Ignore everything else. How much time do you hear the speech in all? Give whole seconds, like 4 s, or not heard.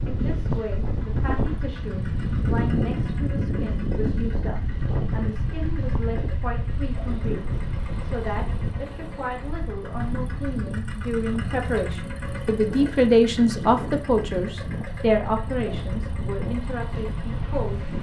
18 s.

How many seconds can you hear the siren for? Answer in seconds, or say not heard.
not heard.